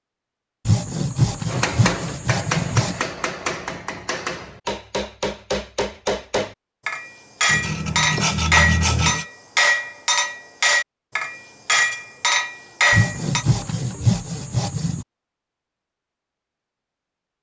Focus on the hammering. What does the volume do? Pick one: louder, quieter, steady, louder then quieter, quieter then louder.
louder.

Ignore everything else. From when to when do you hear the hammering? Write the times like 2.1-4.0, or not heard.
1.4-13.4.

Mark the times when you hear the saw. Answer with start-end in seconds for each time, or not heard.
0.7-3.1, 7.5-9.2, 12.9-15.1.